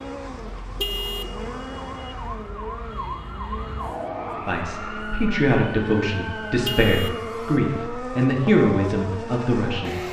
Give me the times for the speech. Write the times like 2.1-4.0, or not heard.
4.3-10.0.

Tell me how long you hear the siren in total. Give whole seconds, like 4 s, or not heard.
10 s.